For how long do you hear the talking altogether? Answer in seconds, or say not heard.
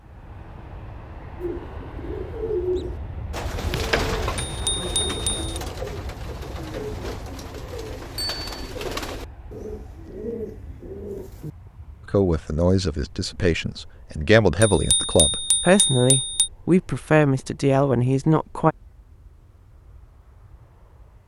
7 s.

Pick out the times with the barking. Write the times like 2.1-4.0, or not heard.
not heard.